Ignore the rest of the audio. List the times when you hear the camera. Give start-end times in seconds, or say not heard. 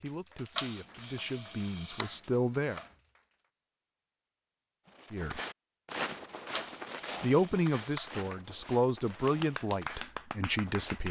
0.6-2.9, 6.5-8.2.